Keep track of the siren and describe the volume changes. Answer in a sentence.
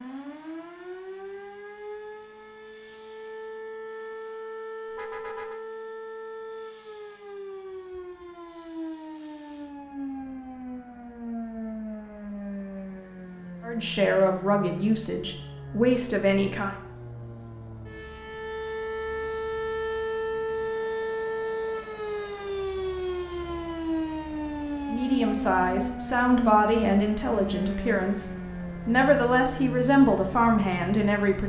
The volume of the siren goes up.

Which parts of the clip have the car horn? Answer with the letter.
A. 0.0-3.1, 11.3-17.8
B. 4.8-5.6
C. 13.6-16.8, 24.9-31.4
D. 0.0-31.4
B.